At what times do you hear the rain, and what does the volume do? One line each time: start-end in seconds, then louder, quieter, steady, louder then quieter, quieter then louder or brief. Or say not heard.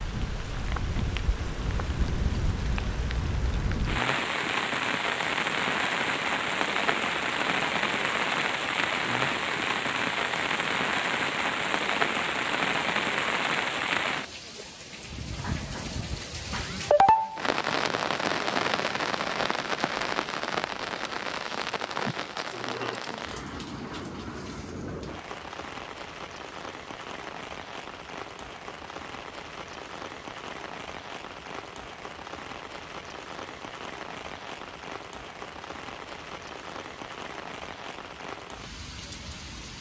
0.0-39.7 quieter.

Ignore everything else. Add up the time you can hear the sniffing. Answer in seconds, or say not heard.
2 s.